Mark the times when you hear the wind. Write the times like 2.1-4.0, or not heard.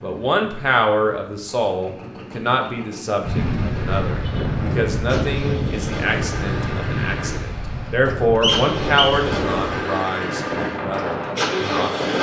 3.2-12.1.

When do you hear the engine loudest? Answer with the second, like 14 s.
12 s.